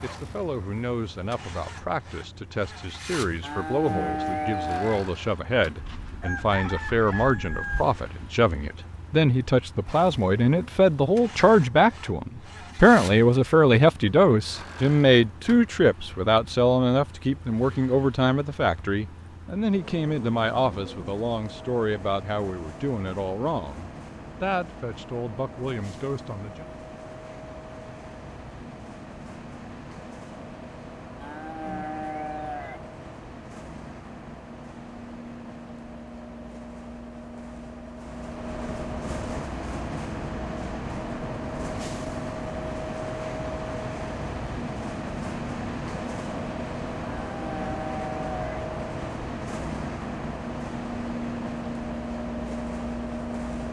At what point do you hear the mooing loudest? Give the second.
4 s.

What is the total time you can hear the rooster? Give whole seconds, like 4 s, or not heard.
2 s.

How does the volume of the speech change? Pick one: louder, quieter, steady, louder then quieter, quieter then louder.
louder then quieter.